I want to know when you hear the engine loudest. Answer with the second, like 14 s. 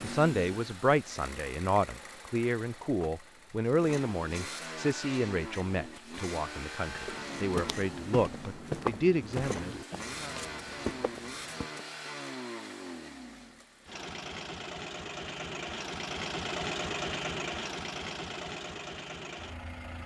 17 s.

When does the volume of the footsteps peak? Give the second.
9 s.